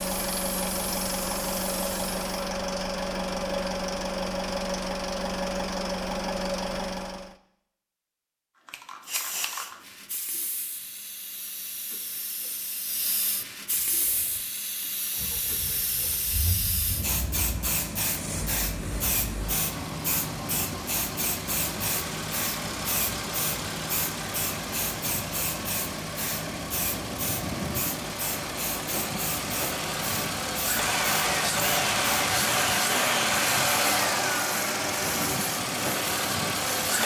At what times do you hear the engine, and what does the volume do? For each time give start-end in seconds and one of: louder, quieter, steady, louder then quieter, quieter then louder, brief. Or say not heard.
0.0-7.3 steady
13.7-37.0 louder.